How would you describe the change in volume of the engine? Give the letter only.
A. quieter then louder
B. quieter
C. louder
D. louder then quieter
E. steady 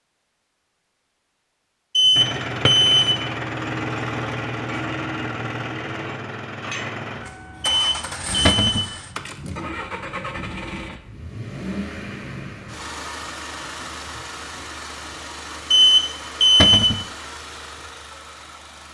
B.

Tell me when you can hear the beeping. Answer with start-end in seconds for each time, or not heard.
1.9-3.1, 7.6-8.8, 15.7-16.9.